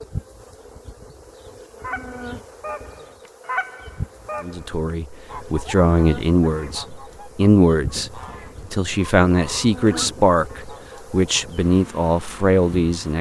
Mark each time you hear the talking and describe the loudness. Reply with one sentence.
The talking can be heard from 4.4 to 13.1 s, at a steady volume.